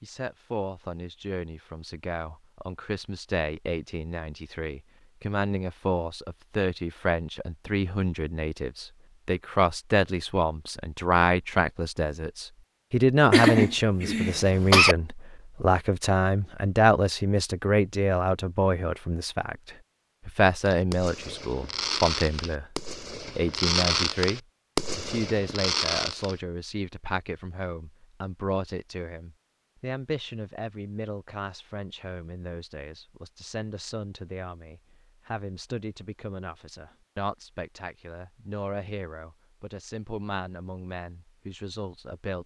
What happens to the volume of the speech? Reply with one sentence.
The volume of the speech goes up, then down.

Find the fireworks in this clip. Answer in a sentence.
You can hear the fireworks from 20.6 to 26.4 s.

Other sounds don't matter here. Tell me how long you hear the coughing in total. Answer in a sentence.
The coughing can be heard for 2 seconds in total.